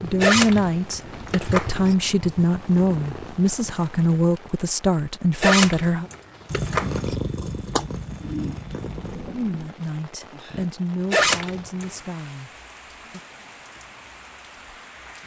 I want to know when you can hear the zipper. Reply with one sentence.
You can hear the zipper from 0.2 to 1.9 s, from 5.4 to 7.2 s and from 11.1 to 11.8 s.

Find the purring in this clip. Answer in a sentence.
You can hear the purring from 0.0 to 3.8 s and from 6.5 to 9.7 s.